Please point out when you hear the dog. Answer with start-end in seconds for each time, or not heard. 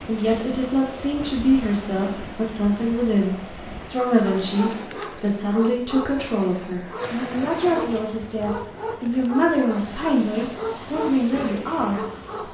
4.2-12.4.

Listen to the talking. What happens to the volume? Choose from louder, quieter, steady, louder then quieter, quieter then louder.
steady.